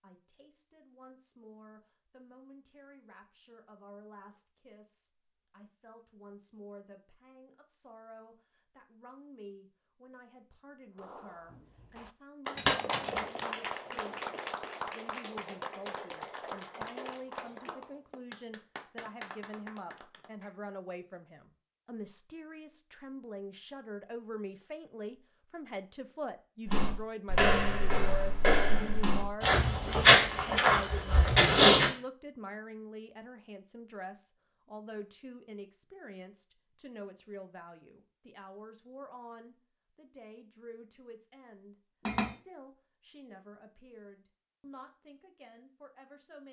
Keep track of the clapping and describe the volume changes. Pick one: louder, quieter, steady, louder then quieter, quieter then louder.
quieter.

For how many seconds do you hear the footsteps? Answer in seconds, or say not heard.
5 s.